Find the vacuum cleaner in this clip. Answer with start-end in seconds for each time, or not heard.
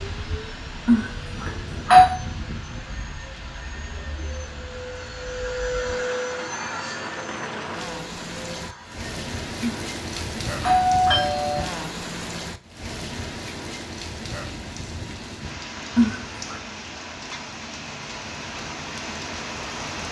0.0-9.2.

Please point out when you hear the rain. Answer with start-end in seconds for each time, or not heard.
0.0-20.0.